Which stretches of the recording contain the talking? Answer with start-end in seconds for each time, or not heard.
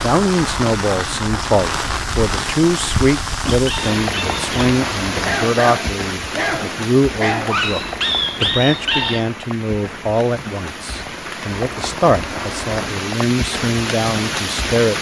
0.0-7.8, 8.4-14.9.